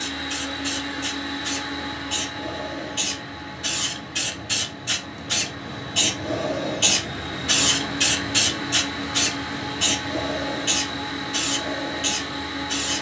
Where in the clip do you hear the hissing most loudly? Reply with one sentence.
The loudest moment of the hissing is at 8 seconds.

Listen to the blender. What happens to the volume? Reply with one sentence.
The volume of the blender goes down, then up.